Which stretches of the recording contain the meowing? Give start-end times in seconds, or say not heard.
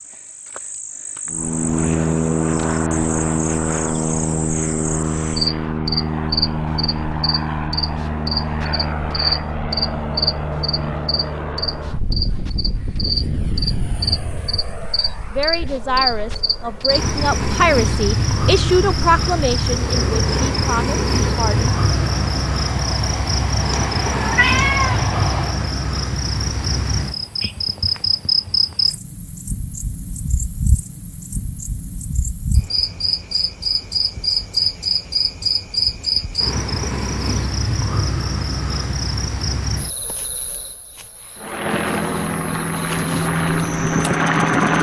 23.9-25.1.